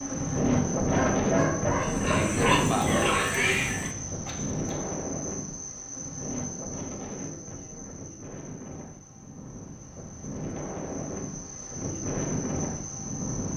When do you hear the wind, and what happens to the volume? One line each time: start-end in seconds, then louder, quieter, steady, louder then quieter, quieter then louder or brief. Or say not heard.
0.0-13.5 quieter then louder.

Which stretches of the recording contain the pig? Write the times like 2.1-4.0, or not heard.
1.8-4.0.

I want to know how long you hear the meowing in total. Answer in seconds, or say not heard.
2 s.